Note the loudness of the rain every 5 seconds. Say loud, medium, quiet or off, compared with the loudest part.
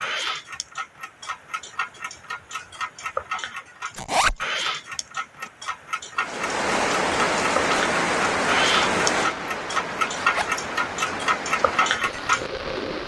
off, loud, medium.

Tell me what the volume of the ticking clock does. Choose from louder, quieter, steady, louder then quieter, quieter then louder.
louder.